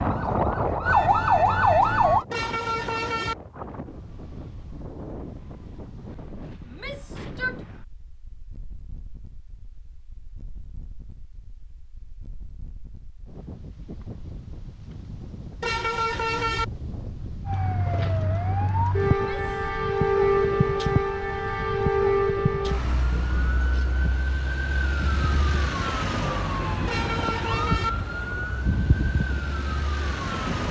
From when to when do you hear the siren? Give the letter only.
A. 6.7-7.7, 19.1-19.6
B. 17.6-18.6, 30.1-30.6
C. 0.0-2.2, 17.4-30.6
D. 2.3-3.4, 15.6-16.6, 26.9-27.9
C.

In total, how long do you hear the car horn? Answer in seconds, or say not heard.
3 s.